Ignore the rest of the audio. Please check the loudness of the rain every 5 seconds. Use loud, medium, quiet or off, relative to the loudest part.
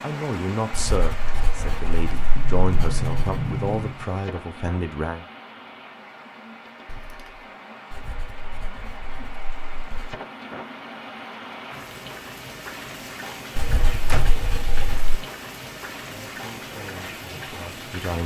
loud, medium, loud, loud.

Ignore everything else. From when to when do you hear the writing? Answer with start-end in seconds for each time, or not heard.
0.7-3.4, 7.9-10.2, 13.6-15.1.